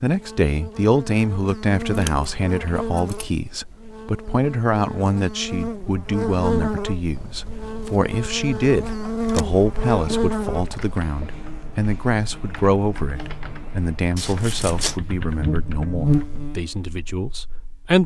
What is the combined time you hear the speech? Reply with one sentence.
The speech can be heard for 18 seconds in total.